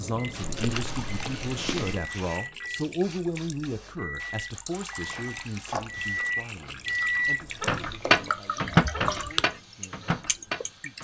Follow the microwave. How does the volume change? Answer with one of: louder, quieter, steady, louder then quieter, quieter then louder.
louder.